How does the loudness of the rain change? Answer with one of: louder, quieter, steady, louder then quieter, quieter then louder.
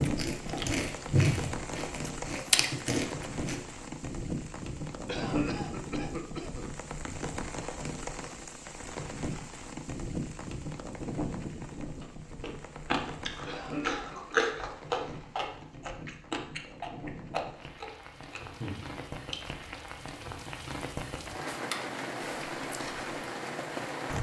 quieter then louder.